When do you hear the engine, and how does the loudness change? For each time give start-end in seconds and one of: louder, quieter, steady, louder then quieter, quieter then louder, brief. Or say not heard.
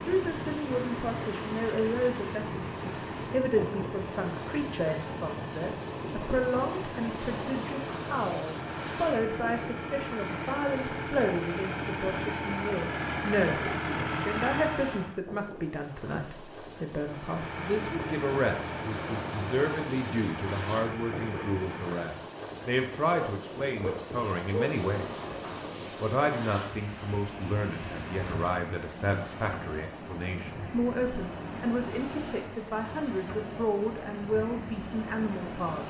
0.0-15.2 louder
17.1-22.1 steady.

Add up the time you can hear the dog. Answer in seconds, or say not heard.
2 s.